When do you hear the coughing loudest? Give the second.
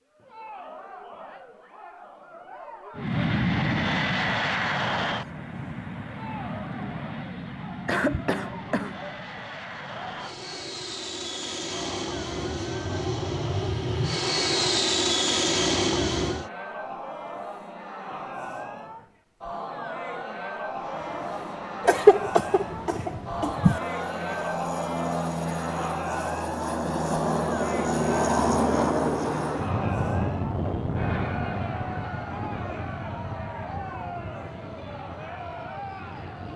22 s.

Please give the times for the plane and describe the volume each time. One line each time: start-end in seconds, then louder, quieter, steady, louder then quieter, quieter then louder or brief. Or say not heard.
3.0-16.5 quieter then louder
20.8-36.5 louder then quieter.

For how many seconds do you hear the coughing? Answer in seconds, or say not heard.
3 s.